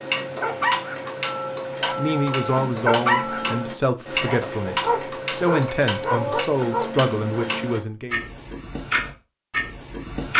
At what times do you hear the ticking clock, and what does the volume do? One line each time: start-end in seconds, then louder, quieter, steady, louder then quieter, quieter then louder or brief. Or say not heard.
0.0-10.3 steady.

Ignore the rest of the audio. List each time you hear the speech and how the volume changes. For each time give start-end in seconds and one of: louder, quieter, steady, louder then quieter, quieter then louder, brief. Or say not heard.
1.9-8.2 steady.